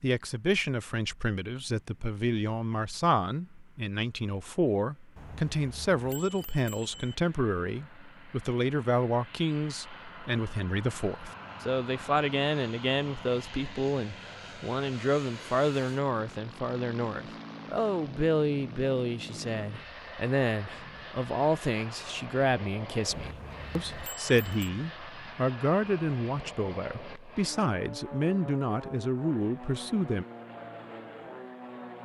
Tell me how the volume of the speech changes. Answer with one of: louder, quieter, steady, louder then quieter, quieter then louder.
steady.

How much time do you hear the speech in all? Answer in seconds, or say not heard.
30 s.